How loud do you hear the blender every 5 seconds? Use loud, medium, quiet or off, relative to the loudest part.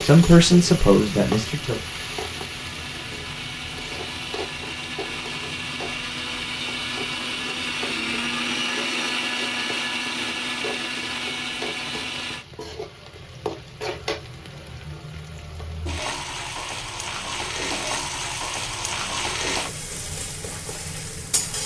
medium, loud, loud, off, off.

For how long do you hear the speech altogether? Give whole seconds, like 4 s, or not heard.
2 s.